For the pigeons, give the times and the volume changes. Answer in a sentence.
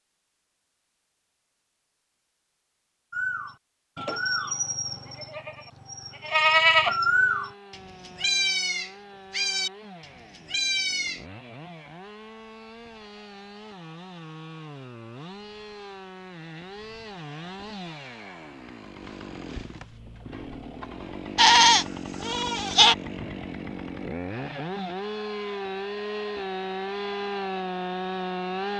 You can't hear the pigeons here.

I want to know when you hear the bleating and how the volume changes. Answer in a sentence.
The bleating can be heard from 3.1 to 11.2 s, getting louder then quieter; and briefly from 21.4 to 22.9 s.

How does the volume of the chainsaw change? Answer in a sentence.
The loudness of the chainsaw goes up.